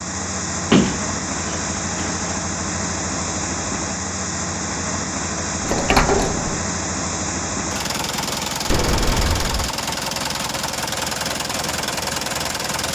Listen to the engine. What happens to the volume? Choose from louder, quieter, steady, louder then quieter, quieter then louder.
steady.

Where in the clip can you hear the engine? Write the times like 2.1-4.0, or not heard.
0.0-12.8.